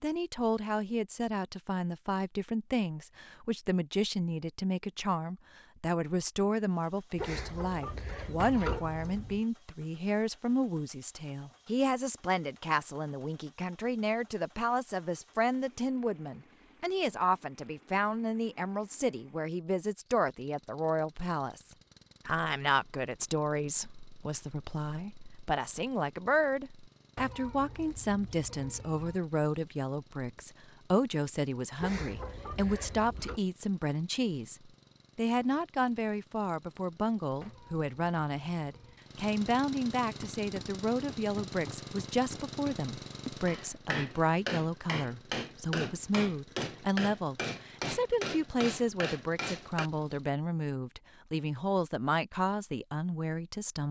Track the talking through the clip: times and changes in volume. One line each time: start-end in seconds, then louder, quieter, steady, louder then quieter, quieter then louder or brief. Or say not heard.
0.0-53.8 steady.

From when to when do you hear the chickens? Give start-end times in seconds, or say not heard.
7.2-8.8, 31.8-33.4.